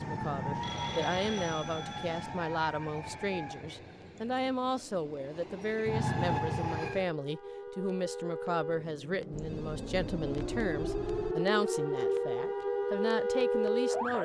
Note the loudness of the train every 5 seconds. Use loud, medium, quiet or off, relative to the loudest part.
medium, loud, off.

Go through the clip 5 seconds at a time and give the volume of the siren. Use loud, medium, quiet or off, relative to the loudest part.
medium, medium, loud.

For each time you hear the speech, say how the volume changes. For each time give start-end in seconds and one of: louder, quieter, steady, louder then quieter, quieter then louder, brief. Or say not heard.
0.0-14.2 steady.